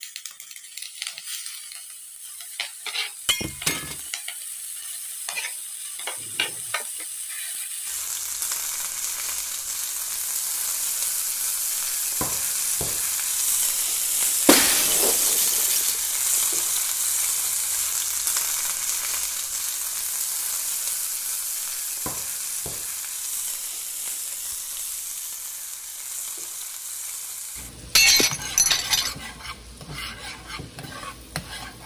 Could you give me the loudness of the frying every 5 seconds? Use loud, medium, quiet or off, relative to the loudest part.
medium, medium, loud, loud, medium, medium, medium.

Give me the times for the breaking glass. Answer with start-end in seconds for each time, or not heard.
3.2-4.0, 14.4-16.4, 27.9-29.1.